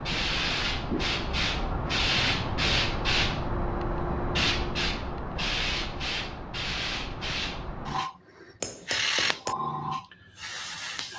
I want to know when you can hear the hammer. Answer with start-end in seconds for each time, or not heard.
8.6-9.6.